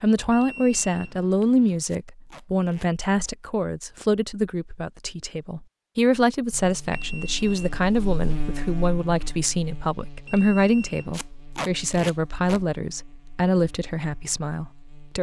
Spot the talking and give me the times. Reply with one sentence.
The talking can be heard from 0.0 to 15.1 s.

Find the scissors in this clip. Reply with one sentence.
The scissors can't be heard in this clip.